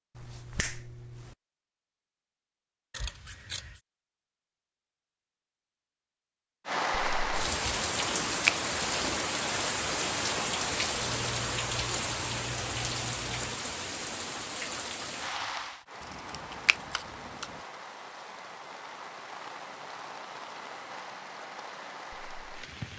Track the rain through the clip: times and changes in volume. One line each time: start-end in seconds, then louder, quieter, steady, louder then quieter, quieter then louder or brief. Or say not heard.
6.7-22.9 quieter.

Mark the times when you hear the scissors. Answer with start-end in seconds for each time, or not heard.
2.9-3.8, 11.0-13.6, 16.0-17.6.